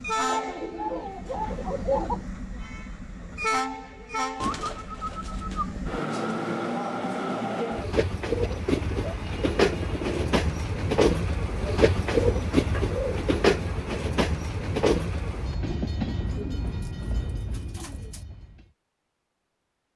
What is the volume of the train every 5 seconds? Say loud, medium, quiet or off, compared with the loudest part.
medium, loud, loud, medium.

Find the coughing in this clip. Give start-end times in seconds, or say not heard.
not heard.